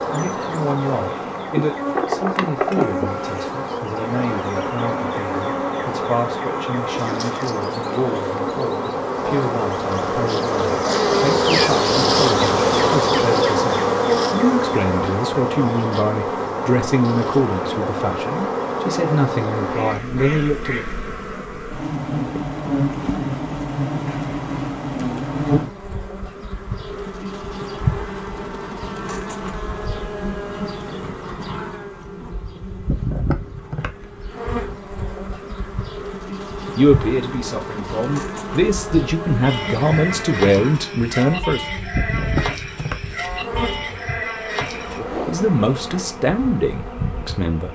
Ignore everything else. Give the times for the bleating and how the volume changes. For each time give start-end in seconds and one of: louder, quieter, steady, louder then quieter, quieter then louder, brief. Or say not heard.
39.4-45.0 steady.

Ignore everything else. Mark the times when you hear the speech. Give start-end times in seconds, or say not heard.
0.1-20.9, 36.8-41.6, 45.0-47.6.